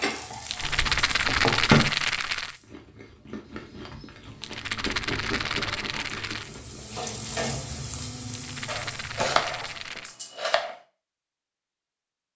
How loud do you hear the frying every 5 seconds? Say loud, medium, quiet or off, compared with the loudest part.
loud, loud, off.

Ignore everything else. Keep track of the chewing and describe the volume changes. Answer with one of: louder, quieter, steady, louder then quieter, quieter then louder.
louder then quieter.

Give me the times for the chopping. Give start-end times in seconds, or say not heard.
0.6-1.9, 8.7-10.8.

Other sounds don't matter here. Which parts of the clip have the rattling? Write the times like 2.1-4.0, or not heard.
0.5-2.5, 4.4-6.5, 8.3-10.2.